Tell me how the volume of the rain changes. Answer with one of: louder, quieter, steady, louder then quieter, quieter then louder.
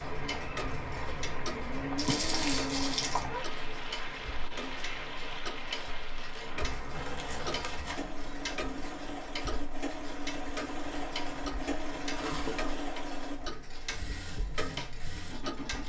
quieter.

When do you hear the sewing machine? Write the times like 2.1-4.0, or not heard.
6.9-15.8.